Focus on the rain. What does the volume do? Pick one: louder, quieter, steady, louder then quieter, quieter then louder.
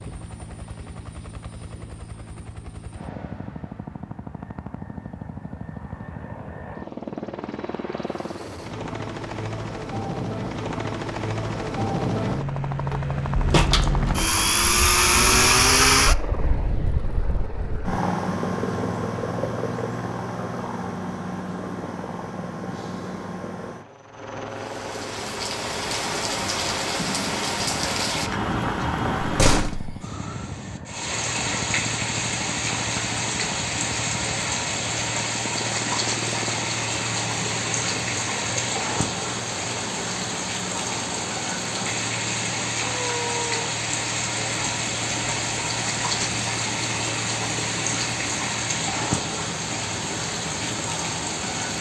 steady.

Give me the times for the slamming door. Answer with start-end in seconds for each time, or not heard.
12.9-14.4, 29.2-30.0.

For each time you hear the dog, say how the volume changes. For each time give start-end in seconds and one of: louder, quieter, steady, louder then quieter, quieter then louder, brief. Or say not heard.
not heard.